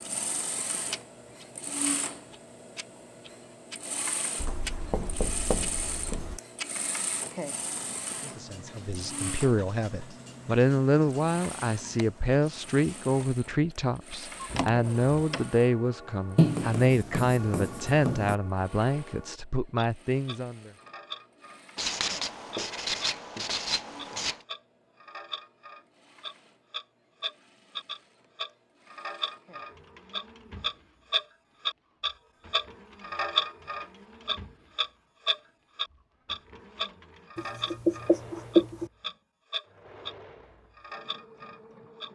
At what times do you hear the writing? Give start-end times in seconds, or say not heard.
4.3-6.4, 16.4-18.4, 21.8-24.4, 37.4-38.9.